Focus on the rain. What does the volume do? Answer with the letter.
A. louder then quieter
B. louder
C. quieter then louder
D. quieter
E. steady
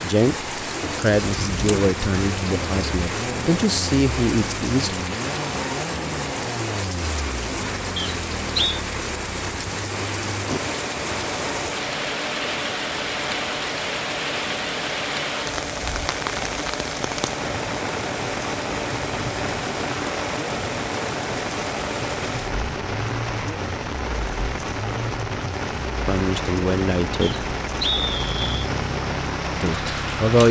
E.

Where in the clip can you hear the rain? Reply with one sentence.
The rain can be heard from 0.0 to 30.4 s.